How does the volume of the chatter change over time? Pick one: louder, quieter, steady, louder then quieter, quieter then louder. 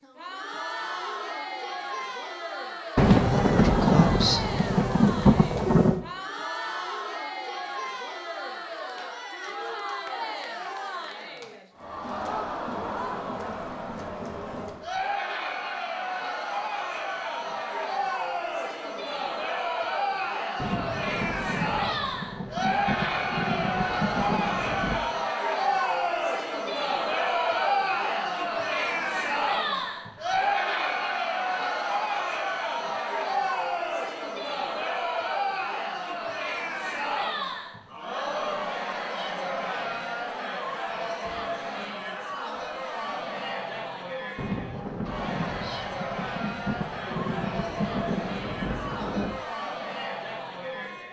louder then quieter.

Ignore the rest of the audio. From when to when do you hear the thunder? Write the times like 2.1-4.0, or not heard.
3.0-6.0, 20.6-25.0, 44.4-49.4.